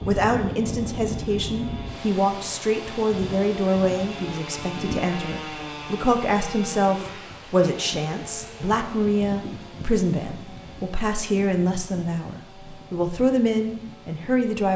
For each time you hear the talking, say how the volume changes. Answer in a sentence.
The talking can be heard from 0.1 to 14.7 s, at a steady volume.